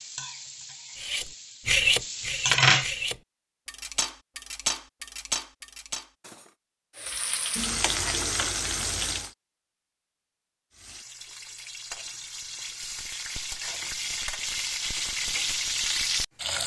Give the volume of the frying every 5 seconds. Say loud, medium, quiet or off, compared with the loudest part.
loud, loud, medium, loud.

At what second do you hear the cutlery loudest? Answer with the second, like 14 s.
2 s.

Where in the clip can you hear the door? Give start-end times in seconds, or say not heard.
not heard.